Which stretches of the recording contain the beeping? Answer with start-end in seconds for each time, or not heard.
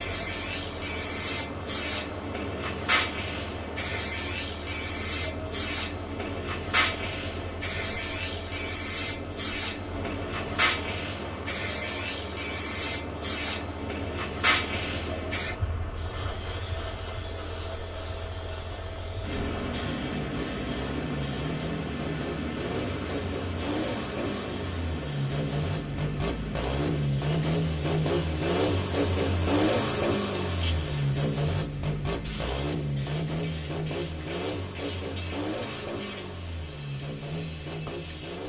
not heard.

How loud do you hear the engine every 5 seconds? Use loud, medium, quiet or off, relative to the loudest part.
quiet, quiet, quiet, quiet, medium, loud, loud, medium.